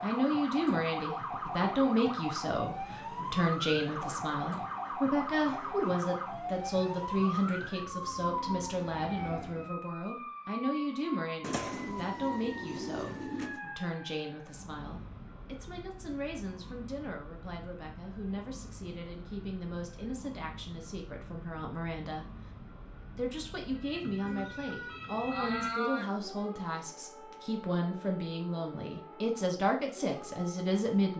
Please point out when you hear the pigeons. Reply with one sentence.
The pigeons can be heard from 11.4 to 13.6 s and from 24.2 to 26.1 s.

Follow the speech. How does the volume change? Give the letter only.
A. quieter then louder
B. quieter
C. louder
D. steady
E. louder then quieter
A.